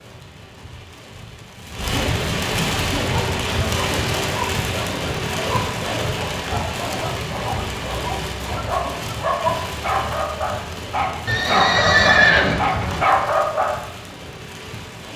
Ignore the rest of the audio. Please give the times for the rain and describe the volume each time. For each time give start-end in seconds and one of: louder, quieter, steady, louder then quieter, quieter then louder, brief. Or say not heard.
0.0-15.1 quieter.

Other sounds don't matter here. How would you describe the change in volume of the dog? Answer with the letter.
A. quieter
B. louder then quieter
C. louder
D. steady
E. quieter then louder
C.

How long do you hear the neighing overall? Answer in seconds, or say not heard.
2 s.